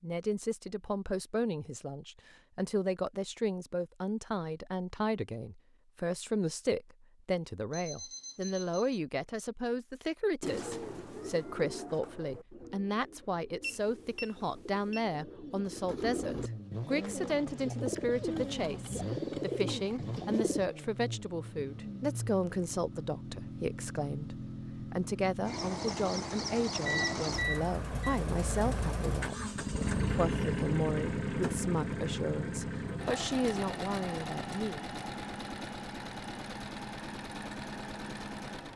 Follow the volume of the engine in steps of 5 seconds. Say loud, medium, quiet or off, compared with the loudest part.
off, off, off, medium, medium, loud, loud, medium.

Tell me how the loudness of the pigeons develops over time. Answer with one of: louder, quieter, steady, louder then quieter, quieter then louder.
quieter then louder.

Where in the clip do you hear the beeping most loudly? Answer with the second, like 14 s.
27 s.